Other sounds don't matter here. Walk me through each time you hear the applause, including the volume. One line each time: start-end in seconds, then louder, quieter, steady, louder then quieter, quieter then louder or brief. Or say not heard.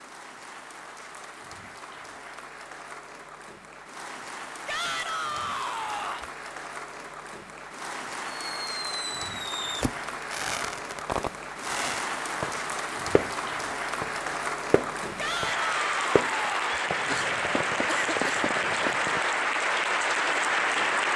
0.0-21.1 louder.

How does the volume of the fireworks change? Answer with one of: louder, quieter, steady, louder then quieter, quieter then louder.
steady.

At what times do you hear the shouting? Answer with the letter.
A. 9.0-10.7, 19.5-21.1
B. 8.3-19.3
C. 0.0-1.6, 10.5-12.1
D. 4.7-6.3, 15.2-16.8
D.